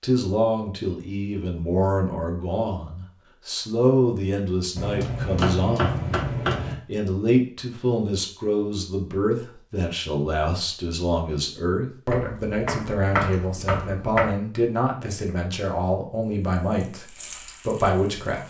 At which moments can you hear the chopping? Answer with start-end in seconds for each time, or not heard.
4.8-6.8, 12.1-14.3.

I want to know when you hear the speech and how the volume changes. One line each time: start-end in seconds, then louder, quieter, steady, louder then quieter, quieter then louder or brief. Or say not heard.
0.0-18.4 steady.